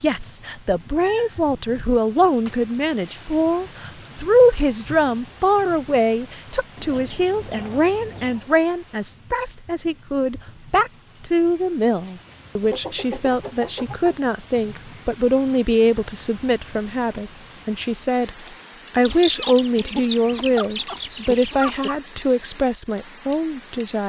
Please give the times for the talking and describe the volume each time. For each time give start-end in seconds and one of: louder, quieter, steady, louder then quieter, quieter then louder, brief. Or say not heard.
0.0-24.0 steady.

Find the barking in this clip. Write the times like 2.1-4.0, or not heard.
not heard.